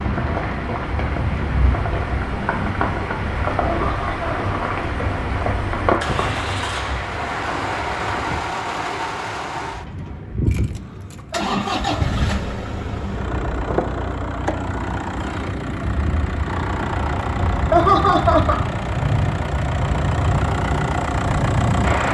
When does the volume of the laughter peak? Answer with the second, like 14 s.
18 s.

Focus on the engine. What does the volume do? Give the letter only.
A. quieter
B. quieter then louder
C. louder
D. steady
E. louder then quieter
C.